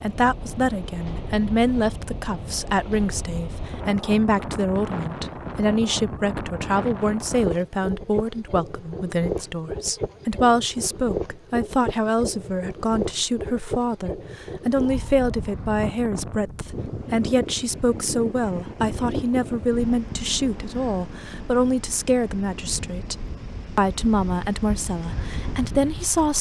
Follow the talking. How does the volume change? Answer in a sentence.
The volume of the talking stays about the same.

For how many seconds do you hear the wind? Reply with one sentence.
You can hear the wind for 26 seconds altogether.